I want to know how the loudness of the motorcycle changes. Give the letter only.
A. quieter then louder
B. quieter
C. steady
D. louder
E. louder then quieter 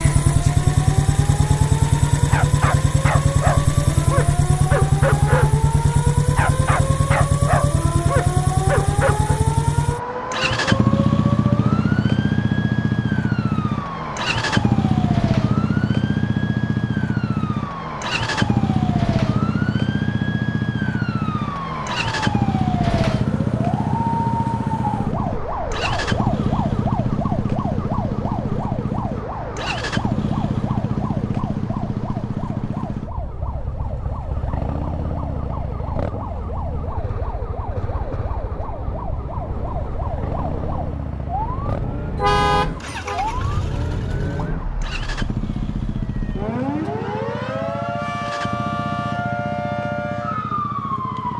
B.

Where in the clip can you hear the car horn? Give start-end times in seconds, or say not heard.
42.1-43.2.